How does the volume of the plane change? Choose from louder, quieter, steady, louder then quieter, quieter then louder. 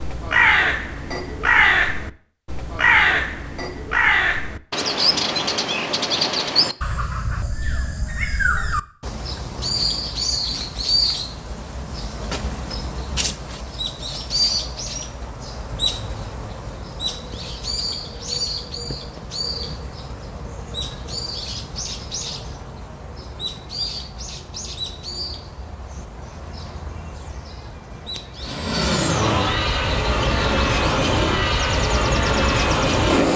steady.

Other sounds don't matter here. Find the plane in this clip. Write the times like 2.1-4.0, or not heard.
28.4-33.3.